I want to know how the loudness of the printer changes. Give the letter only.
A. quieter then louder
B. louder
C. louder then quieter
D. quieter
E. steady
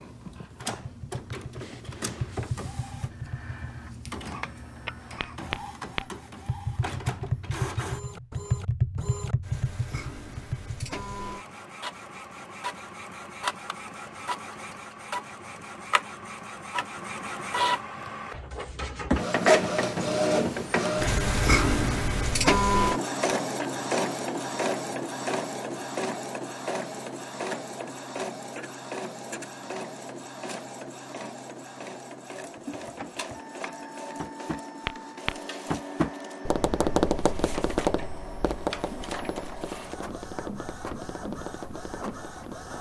C.